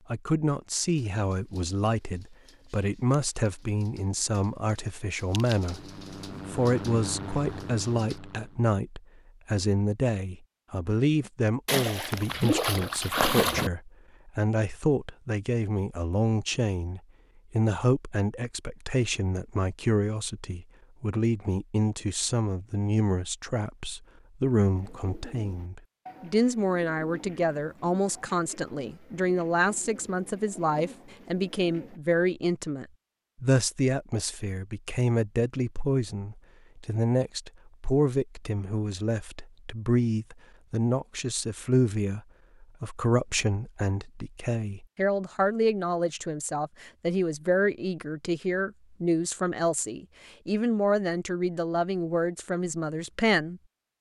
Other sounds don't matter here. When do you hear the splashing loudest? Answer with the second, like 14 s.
13 s.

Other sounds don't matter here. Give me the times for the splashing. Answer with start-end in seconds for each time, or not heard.
11.7-13.7.